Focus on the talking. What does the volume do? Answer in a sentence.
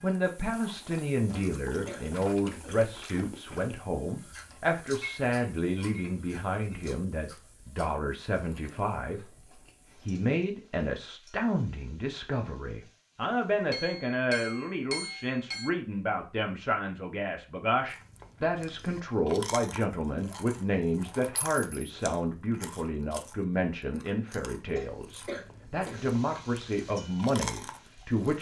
The volume of the talking stays about the same.